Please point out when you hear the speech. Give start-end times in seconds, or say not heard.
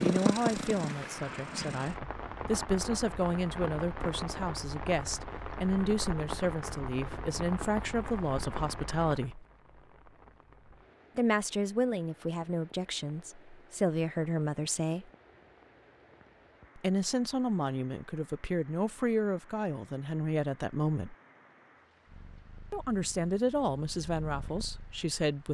0.0-9.4, 11.2-15.1, 16.8-21.1, 22.7-25.4.